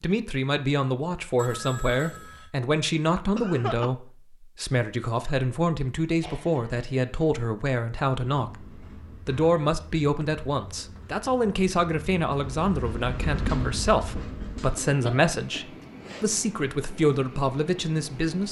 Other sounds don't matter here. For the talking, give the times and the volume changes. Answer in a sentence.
You can hear the talking from 0.0 to 18.4 s, at a steady volume.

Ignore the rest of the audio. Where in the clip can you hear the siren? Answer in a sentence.
The siren can't be heard in this clip.